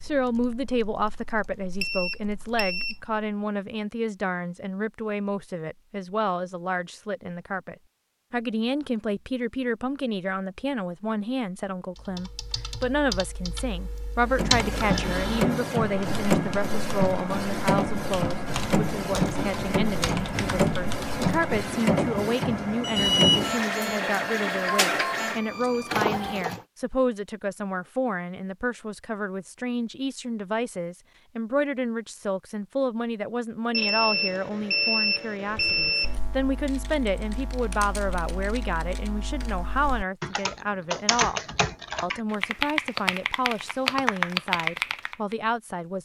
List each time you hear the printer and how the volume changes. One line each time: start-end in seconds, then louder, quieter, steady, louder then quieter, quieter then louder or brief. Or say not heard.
14.2-26.6 steady.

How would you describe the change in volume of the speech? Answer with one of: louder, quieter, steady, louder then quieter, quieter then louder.
steady.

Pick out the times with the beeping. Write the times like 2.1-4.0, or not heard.
1.8-3.0, 22.8-23.6, 33.7-36.1.